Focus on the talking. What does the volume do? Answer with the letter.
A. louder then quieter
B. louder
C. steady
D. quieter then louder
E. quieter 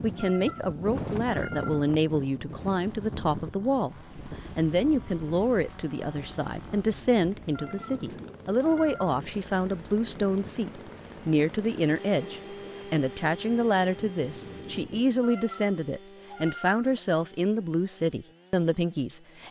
C.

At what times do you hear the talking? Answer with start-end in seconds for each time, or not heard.
0.0-4.0, 4.5-19.4.